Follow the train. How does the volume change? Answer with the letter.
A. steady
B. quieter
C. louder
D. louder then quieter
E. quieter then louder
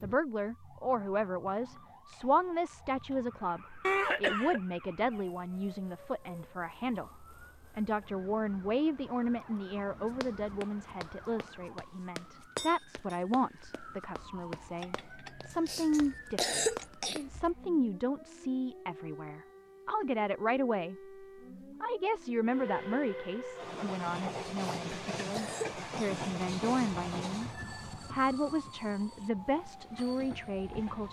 B.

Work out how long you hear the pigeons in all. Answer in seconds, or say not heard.
not heard.